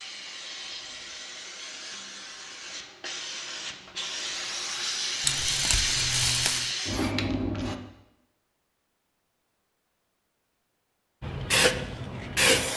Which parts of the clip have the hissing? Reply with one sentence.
The hissing can be heard from 0.0 to 7.8 s and from 11.2 to 12.7 s.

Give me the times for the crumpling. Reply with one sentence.
You can hear the crumpling from 5.2 to 6.8 s.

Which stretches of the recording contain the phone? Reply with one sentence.
The phone can't be heard in this clip.